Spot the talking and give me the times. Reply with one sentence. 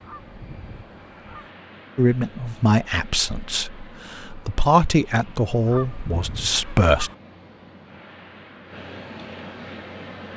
You can hear the talking from 1.9 to 7.1 s.